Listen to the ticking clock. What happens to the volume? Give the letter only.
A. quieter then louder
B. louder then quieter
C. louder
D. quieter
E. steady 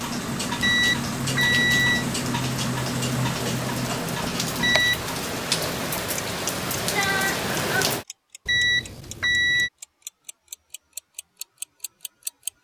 D.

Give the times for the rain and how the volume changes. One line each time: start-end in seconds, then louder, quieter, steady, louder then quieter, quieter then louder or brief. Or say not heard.
0.2-8.1 louder.